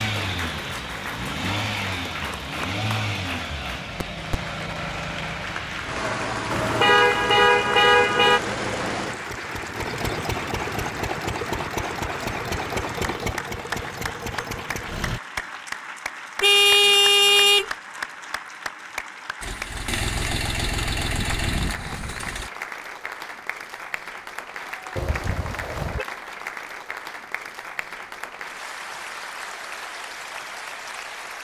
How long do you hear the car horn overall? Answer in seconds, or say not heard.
4 s.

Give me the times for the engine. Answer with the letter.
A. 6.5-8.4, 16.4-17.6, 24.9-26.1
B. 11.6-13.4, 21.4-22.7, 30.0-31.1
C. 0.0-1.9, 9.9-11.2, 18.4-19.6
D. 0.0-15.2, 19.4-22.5
D.